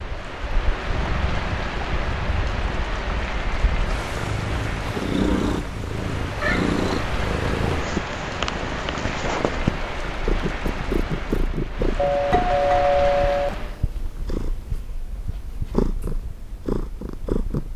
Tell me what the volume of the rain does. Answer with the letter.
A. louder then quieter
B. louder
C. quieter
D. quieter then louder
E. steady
E.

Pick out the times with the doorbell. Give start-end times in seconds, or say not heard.
11.9-13.6.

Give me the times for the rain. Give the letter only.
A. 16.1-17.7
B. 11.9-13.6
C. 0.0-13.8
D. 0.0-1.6
C.